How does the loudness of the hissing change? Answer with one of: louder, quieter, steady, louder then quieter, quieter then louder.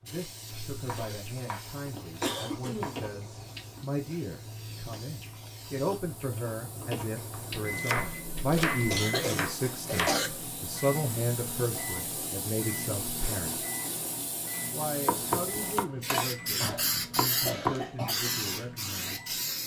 louder.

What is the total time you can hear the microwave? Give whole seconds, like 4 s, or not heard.
12 s.